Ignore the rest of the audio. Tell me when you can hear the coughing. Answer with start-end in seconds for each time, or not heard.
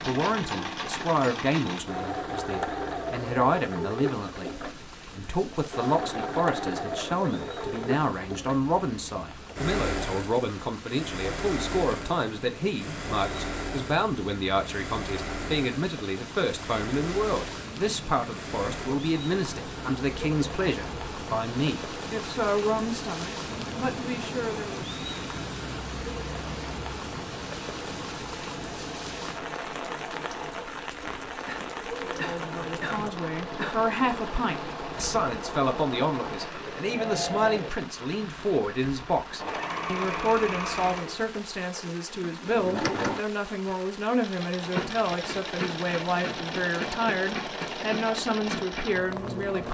31.4-33.8.